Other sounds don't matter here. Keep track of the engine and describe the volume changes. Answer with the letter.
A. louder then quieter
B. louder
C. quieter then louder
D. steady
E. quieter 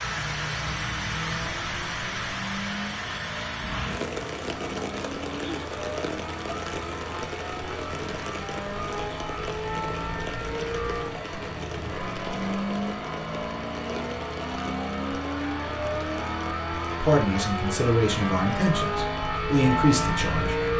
B.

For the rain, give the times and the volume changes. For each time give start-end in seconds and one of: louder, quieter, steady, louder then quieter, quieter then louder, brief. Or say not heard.
0.0-20.7 quieter.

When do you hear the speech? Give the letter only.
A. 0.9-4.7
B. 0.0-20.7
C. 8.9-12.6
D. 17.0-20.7
D.